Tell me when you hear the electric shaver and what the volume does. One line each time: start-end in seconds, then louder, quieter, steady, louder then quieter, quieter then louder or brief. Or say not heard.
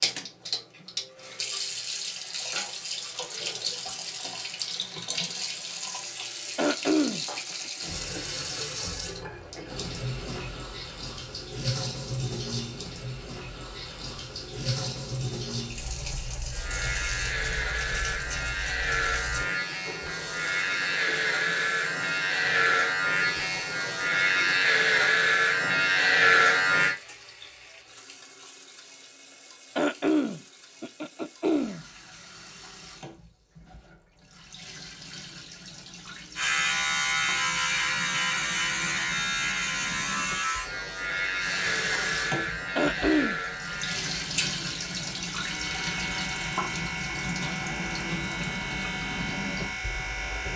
16.5-26.9 louder
36.4-50.5 quieter.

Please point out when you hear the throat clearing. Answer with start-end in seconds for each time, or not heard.
6.5-7.2, 29.8-31.9, 42.8-43.4.